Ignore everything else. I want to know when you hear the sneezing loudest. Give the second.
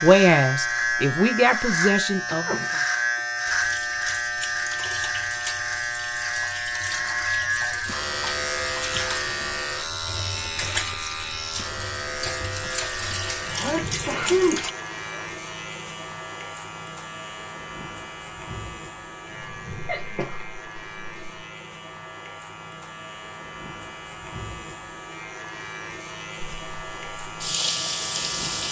14 s.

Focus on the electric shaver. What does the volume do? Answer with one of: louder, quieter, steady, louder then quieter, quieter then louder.
quieter.